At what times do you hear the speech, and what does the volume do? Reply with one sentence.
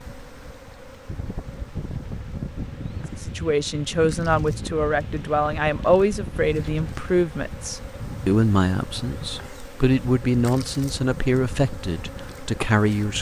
The speech can be heard from 3.2 to 13.1 s, at a steady volume.